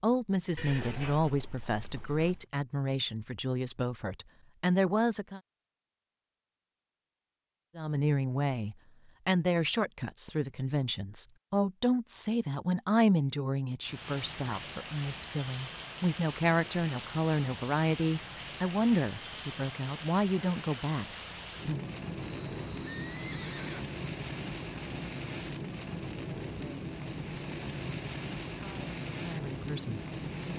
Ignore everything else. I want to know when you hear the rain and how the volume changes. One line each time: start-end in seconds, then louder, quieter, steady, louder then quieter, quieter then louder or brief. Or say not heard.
13.8-30.5 steady.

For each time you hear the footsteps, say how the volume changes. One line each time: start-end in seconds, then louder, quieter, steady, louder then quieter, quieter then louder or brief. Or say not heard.
not heard.